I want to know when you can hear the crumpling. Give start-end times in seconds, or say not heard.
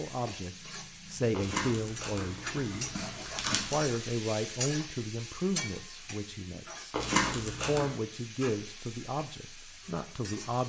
1.3-3.9, 6.9-8.0.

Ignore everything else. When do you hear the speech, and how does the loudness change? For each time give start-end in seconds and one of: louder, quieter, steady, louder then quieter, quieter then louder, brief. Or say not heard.
0.0-10.6 steady.